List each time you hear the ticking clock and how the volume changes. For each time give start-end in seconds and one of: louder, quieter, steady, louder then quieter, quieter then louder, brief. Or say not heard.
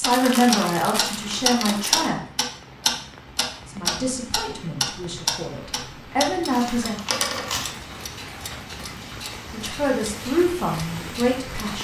0.0-11.7 quieter.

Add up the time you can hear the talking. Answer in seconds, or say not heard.
8 s.